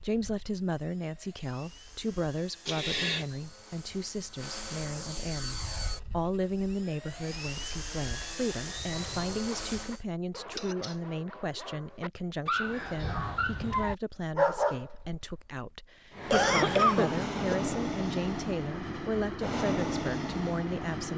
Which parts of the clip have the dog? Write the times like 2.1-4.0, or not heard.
8.9-15.6.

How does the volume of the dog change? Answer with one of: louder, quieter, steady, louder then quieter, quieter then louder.
louder.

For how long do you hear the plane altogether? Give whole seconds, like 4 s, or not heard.
15 s.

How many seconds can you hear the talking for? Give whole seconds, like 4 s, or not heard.
21 s.